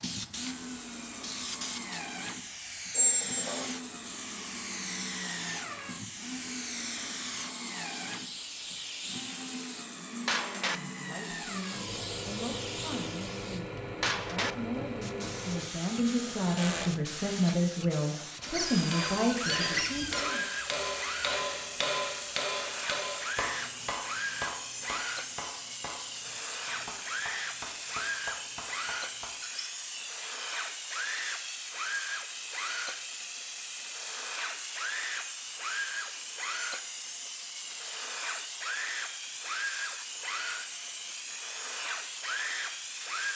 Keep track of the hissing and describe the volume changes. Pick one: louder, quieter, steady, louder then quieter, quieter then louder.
steady.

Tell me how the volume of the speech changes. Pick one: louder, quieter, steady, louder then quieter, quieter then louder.
louder.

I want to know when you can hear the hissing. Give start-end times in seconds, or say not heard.
0.0-43.3.